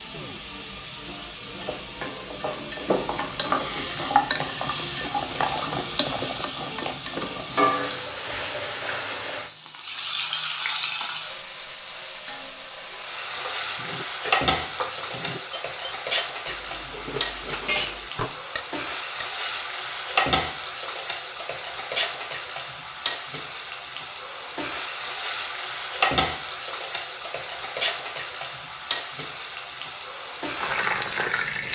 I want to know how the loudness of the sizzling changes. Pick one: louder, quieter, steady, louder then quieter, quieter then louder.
steady.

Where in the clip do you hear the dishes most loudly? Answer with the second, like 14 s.
18 s.